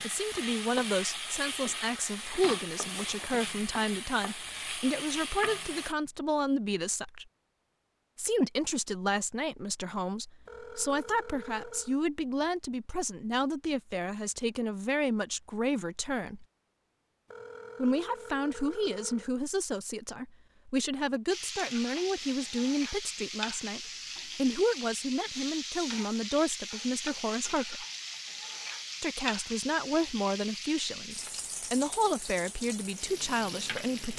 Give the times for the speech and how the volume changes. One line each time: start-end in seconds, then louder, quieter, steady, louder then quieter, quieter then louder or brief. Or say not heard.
0.0-7.2 steady
8.2-16.4 steady
17.8-27.9 steady
29.0-34.1 steady.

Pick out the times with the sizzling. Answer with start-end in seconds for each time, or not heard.
0.0-6.0, 21.3-34.1.